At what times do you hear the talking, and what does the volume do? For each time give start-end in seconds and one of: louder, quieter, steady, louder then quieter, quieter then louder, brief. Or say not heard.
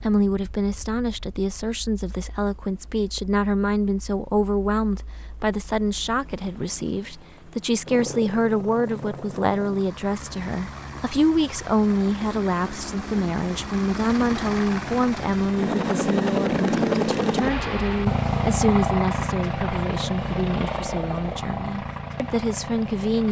0.0-23.2 steady.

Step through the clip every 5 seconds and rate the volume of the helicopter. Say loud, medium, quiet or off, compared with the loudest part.
quiet, quiet, medium, loud, medium.